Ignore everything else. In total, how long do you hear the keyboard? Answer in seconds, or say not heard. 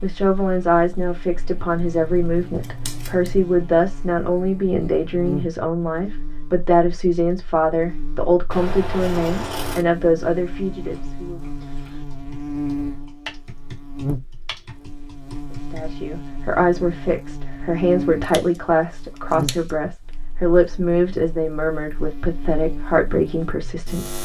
5 s.